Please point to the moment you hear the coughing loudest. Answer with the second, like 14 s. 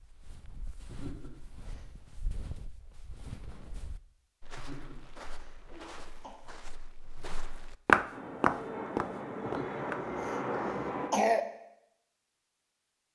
11 s.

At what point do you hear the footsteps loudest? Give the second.
8 s.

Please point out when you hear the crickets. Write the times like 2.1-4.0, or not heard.
not heard.